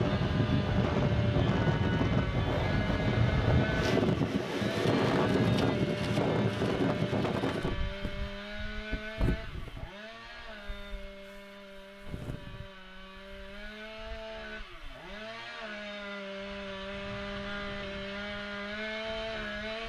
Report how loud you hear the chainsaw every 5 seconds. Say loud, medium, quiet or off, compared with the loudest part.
loud, loud, medium, loud.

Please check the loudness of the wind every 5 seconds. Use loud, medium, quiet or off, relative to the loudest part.
loud, loud, quiet, quiet.